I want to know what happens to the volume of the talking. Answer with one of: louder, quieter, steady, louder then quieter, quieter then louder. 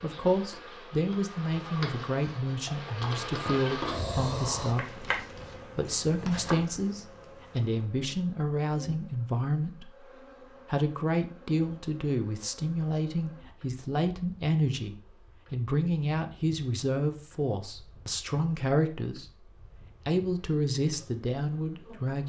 steady.